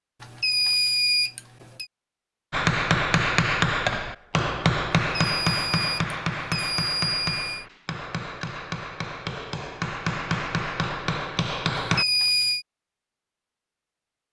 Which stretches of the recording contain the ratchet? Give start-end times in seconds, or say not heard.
not heard.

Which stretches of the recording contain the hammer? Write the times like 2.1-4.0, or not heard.
2.5-12.1.